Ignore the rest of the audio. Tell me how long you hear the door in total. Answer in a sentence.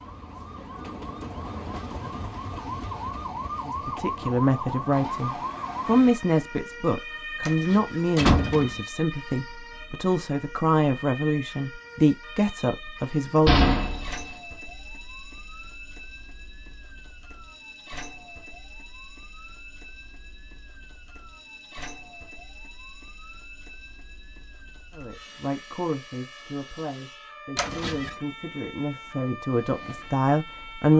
You can hear the door for 3 seconds altogether.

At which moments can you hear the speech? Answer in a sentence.
You can hear the speech from 3.6 to 13.8 s and from 24.9 to 30.9 s.